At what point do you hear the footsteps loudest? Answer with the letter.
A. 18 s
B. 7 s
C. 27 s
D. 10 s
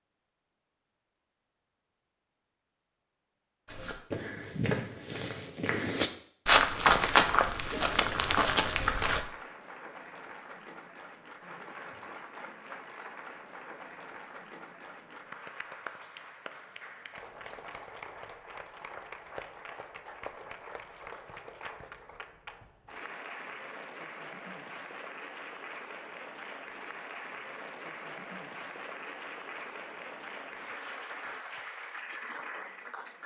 B.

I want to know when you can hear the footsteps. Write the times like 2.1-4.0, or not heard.
3.6-9.2.